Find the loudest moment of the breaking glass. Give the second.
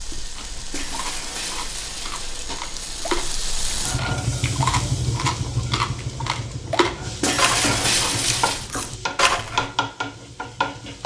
8 s.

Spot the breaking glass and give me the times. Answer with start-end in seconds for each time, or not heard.
0.7-2.5, 7.2-8.7.